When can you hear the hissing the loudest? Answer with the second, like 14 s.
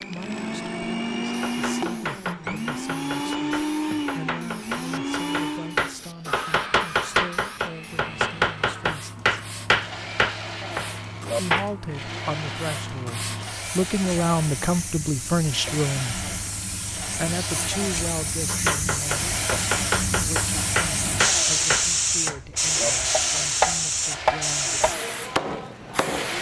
22 s.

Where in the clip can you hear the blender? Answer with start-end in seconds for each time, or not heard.
0.0-26.3.